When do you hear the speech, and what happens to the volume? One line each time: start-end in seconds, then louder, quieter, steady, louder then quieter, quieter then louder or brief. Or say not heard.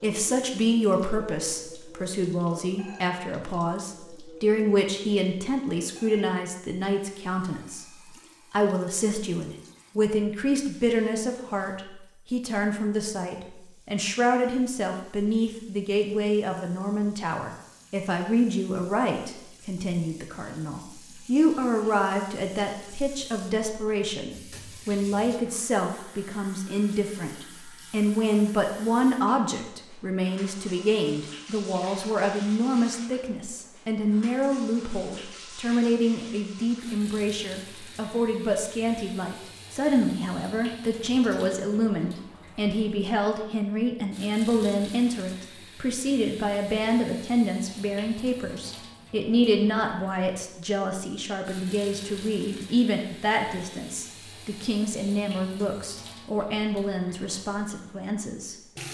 0.0-58.5 steady.